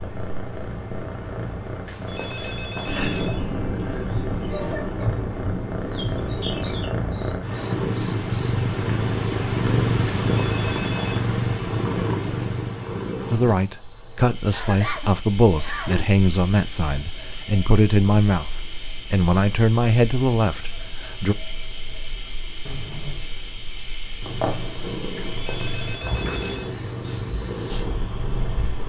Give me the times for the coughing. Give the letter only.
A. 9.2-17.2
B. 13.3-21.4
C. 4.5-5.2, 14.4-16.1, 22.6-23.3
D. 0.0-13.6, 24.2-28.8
C.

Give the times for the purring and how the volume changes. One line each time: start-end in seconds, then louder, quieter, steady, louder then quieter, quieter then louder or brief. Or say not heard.
0.0-13.6 louder
24.2-28.8 steady.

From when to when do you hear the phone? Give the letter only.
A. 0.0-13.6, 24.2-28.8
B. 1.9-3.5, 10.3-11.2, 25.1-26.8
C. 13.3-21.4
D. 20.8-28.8
B.